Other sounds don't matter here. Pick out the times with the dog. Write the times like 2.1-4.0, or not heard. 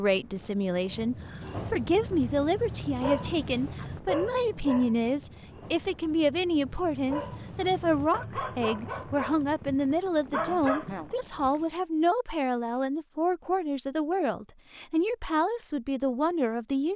0.8-11.1.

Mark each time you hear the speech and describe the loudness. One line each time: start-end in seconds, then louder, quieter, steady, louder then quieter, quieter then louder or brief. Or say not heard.
0.0-16.9 steady.